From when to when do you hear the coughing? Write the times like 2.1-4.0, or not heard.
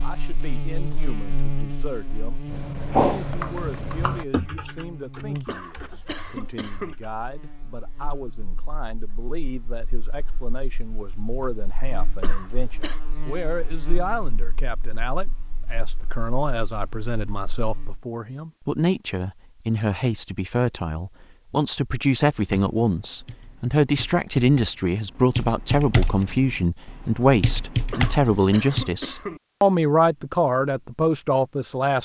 5.5-7.0, 12.2-13.0, 27.9-29.4.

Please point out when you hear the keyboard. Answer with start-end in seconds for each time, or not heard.
2.5-7.1, 22.3-28.9.